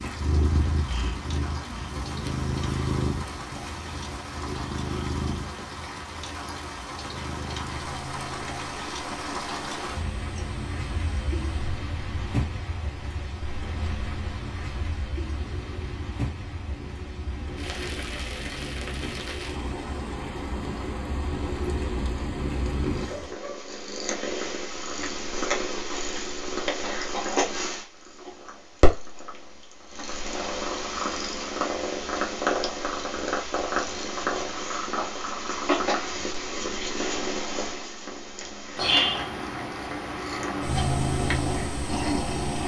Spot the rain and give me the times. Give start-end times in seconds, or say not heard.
0.0-23.4.